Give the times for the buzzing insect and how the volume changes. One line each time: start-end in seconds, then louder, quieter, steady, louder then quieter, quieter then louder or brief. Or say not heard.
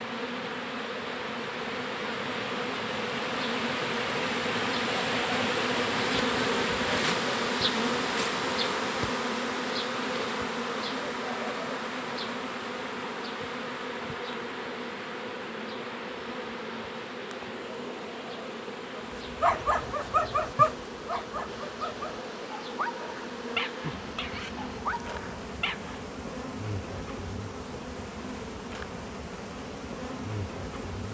0.0-31.0 quieter.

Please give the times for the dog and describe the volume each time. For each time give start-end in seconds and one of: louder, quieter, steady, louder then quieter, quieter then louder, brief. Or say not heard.
19.1-25.9 quieter.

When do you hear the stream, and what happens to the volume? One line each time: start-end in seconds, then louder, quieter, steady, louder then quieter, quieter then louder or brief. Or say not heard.
0.0-31.0 quieter.